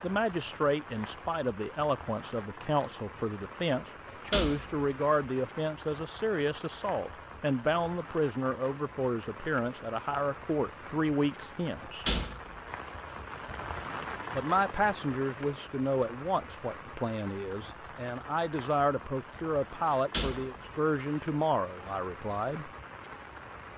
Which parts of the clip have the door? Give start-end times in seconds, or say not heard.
4.1-5.4, 11.8-13.2, 19.9-21.2.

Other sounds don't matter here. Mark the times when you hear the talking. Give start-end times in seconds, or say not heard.
0.0-12.1, 14.3-22.7.